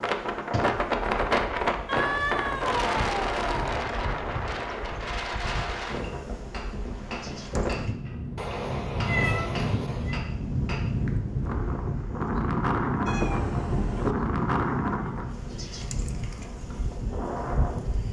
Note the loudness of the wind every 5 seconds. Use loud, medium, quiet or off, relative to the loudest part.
loud, medium, loud, medium.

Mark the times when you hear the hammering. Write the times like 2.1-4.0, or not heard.
5.5-10.8.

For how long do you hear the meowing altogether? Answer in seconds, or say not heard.
5 s.